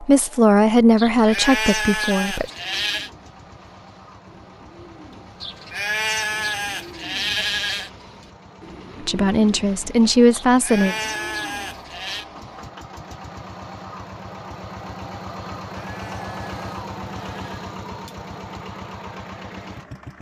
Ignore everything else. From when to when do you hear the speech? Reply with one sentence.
The speech can be heard from 0.0 to 2.5 s and from 9.0 to 10.9 s.